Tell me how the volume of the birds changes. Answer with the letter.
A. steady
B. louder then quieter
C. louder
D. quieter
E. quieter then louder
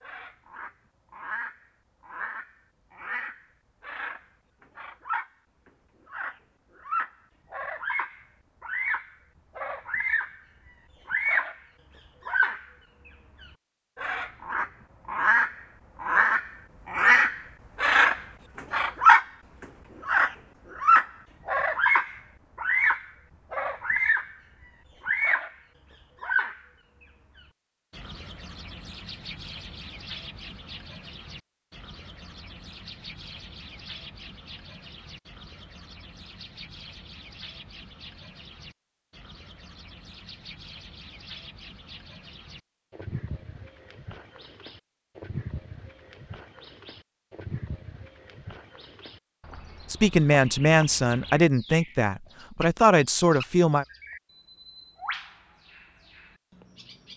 B.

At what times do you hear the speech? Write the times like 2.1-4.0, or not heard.
49.9-53.9.